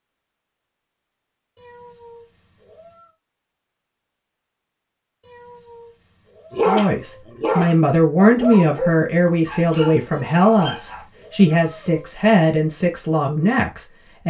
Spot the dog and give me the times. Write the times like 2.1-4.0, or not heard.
6.5-11.1.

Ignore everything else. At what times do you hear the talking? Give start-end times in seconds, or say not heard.
6.7-14.2.